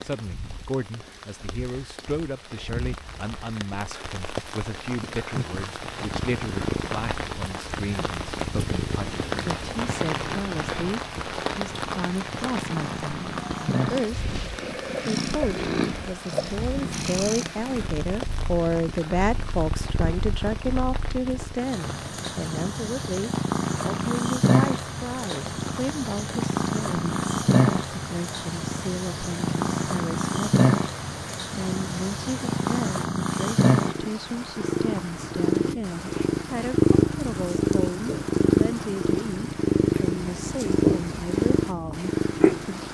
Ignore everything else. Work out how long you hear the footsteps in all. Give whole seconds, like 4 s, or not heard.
not heard.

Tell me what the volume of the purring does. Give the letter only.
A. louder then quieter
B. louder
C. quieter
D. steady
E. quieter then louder
B.